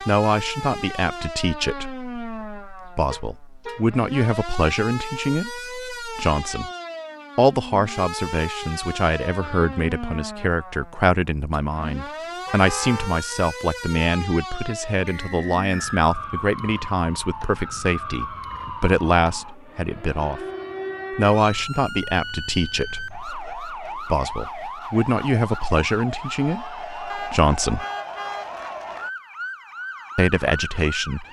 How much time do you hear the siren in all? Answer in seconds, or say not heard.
31 s.